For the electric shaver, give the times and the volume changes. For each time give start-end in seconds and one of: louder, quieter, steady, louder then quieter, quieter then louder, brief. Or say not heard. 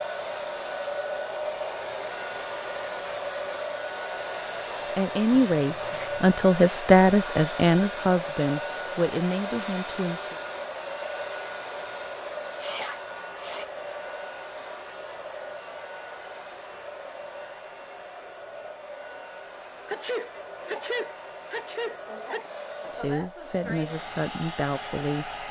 not heard.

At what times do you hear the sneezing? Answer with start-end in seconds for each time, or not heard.
5.3-6.3, 12.6-13.7, 19.8-22.4.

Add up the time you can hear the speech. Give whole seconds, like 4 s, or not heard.
8 s.